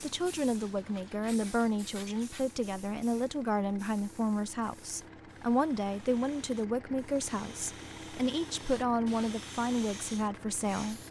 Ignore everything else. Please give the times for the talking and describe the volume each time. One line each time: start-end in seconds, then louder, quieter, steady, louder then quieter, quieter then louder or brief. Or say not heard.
0.0-11.0 steady.